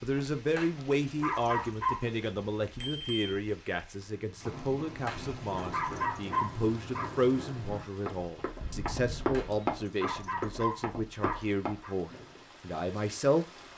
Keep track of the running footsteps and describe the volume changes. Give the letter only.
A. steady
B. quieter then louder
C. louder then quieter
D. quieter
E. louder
C.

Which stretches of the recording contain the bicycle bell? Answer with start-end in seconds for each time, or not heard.
2.8-3.4, 8.6-9.7.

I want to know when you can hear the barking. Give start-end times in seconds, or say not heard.
0.6-2.1, 5.0-7.1, 9.3-11.9.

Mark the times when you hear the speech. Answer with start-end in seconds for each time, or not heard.
0.0-13.4.